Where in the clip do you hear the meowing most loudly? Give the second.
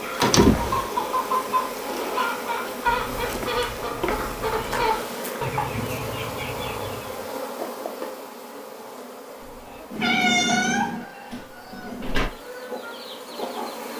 10 s.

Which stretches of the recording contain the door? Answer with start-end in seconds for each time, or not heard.
0.2-0.8, 11.3-12.3.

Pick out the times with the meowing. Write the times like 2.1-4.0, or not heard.
2.9-4.8, 9.4-11.4.